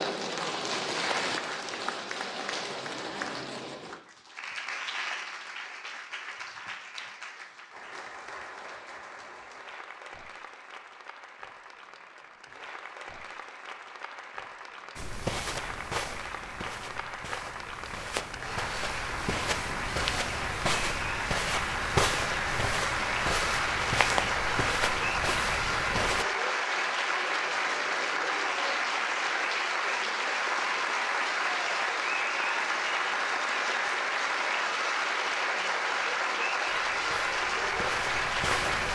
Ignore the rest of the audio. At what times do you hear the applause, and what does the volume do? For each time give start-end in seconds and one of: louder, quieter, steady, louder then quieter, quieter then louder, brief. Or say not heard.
0.0-38.9 quieter then louder.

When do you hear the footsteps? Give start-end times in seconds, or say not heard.
14.9-26.2, 36.6-38.9.